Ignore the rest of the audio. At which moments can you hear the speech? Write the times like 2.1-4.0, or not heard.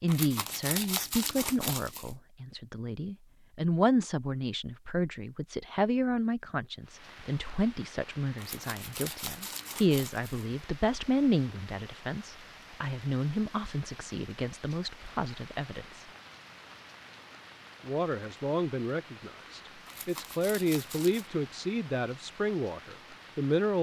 0.0-16.1, 17.9-23.7.